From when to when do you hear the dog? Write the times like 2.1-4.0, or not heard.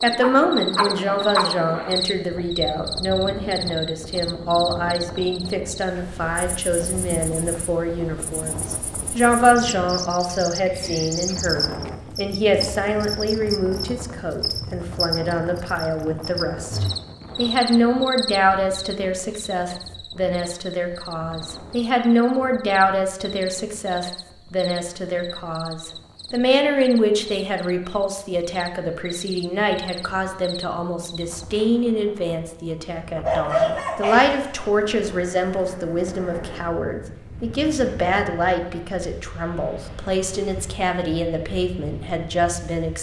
0.2-1.6, 33.2-34.7.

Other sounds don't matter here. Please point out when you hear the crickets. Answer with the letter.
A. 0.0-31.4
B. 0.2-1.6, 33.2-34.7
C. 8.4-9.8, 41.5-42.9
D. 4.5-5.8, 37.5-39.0
A.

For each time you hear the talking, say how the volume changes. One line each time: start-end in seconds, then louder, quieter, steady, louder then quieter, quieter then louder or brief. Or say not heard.
0.0-42.9 steady.